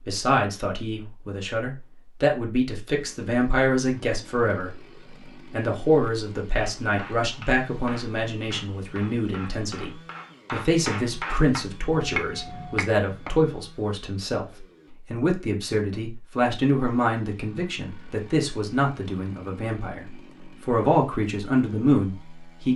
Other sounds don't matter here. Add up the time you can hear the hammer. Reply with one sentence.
The hammer can be heard for 7 seconds in total.